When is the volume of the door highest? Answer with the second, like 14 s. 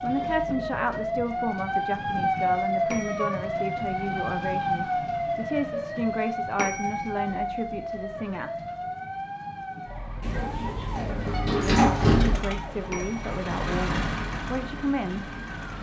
12 s.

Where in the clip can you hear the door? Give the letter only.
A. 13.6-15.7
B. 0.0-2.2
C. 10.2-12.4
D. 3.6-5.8
C.